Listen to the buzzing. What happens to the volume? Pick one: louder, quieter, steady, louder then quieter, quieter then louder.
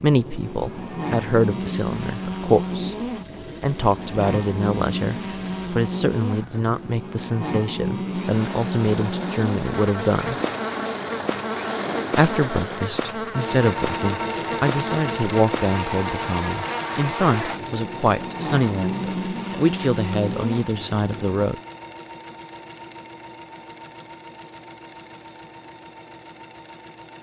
steady.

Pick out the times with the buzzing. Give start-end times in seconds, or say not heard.
0.0-21.4.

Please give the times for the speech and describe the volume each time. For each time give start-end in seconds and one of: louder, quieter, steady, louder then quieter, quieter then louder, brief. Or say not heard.
0.0-3.0 brief
3.6-10.3 steady
12.2-21.6 steady.